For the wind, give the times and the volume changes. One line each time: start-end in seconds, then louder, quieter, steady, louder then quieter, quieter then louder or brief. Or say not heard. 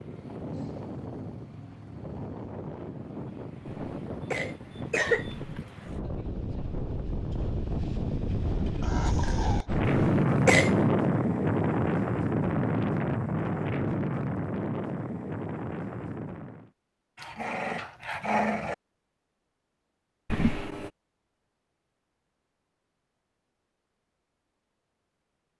0.0-16.7 louder then quieter.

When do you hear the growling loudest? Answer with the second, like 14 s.
18 s.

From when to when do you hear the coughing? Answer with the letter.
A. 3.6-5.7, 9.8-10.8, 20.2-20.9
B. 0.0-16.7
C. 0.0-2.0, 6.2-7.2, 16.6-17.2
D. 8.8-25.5
A.